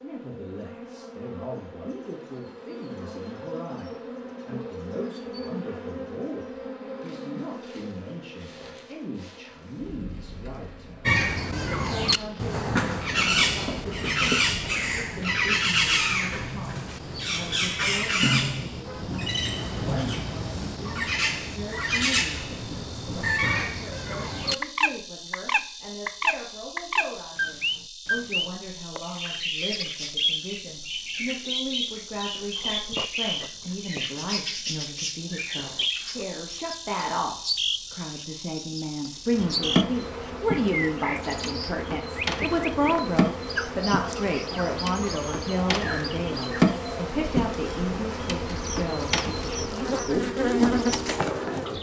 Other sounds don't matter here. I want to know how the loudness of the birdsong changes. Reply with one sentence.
The loudness of the birdsong goes down.